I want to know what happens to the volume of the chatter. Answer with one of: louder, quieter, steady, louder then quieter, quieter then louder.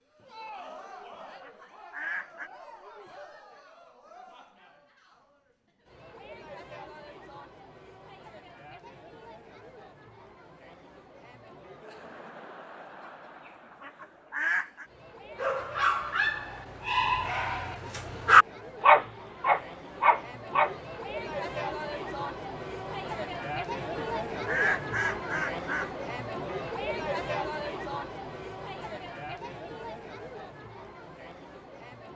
louder.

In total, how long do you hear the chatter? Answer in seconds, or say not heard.
32 s.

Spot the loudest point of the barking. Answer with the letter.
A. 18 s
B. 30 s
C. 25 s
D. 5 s
A.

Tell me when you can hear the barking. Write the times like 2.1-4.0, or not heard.
15.3-20.7.